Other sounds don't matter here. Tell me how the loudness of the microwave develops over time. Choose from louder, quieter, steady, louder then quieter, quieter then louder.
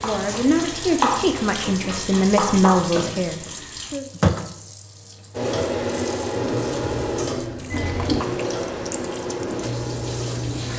quieter.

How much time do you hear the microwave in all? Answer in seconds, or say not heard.
5 s.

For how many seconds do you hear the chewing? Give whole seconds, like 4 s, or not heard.
not heard.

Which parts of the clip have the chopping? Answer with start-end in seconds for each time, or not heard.
0.0-3.5.